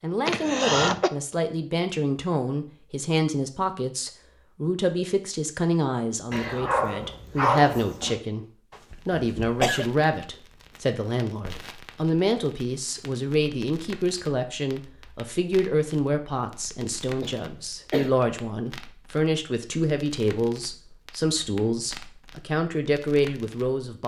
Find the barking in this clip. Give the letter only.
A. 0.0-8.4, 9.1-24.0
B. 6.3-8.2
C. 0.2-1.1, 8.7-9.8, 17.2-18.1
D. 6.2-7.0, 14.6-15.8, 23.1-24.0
B.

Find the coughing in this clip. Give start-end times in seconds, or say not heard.
0.2-1.1, 8.7-9.8, 17.2-18.1.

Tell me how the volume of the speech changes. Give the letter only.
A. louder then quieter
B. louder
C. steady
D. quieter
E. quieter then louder
C.